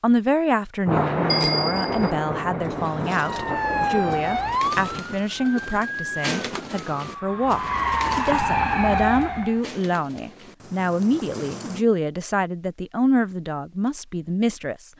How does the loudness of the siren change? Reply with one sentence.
The loudness of the siren goes down, then up.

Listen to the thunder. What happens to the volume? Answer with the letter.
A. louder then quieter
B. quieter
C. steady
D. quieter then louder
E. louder
B.